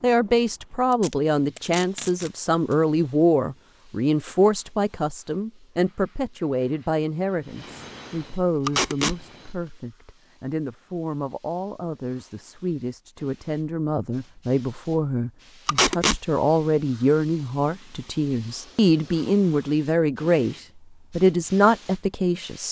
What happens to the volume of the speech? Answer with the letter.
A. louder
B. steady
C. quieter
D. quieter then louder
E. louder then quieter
D.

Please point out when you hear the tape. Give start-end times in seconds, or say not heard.
1.0-2.3, 8.7-9.2, 15.7-16.2.